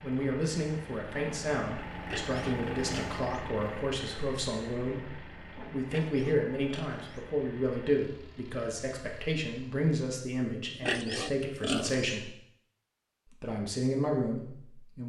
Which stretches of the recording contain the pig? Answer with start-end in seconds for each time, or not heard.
1.9-3.5, 5.8-7.2, 10.7-12.2.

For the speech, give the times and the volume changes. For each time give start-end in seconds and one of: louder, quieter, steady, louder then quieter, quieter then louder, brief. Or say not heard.
0.0-12.3 steady
13.4-15.0 brief.